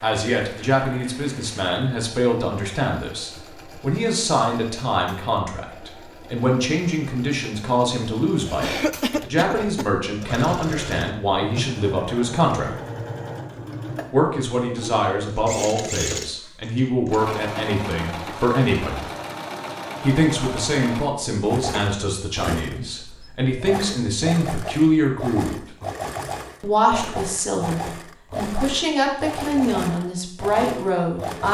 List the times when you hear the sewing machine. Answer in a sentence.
You can hear the sewing machine from 0.0 to 31.4 s.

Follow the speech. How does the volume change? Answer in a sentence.
The loudness of the speech stays about the same.